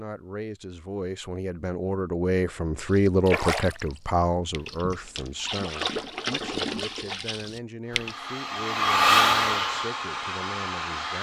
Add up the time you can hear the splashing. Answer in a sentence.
You can hear the splashing for 5 seconds altogether.